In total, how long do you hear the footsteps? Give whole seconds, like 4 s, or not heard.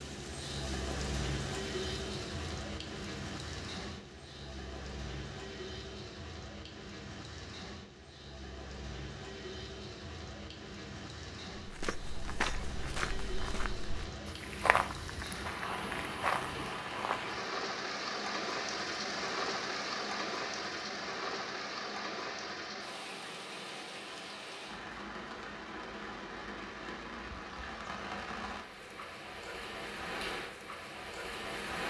6 s.